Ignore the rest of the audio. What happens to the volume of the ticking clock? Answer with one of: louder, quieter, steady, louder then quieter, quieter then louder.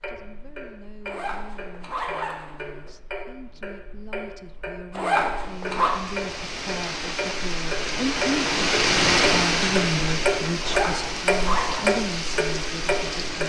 louder.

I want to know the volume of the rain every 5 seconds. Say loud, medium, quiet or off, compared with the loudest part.
off, loud, medium.